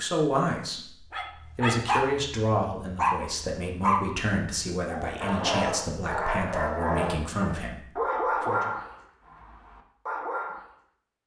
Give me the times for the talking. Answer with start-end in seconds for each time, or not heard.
0.0-8.7.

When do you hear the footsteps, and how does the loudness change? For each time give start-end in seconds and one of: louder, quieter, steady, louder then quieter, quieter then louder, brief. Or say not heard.
not heard.